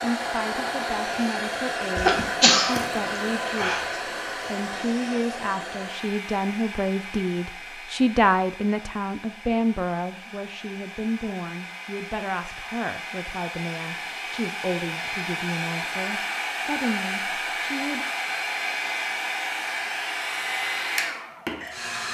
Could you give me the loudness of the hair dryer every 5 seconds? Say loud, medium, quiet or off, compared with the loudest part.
loud, medium, medium, loud, loud.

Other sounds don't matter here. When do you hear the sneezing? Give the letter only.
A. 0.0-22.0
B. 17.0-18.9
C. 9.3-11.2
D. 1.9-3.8
D.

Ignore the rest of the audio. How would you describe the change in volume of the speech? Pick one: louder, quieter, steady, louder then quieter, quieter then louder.
louder then quieter.